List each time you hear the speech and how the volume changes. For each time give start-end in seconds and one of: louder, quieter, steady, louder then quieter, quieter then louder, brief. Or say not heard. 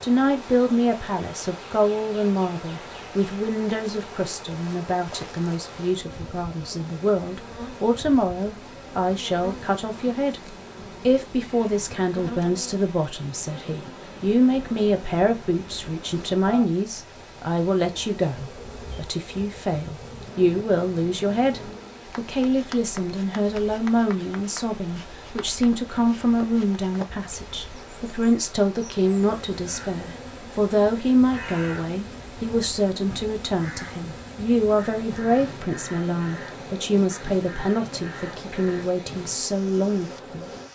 0.0-40.5 steady.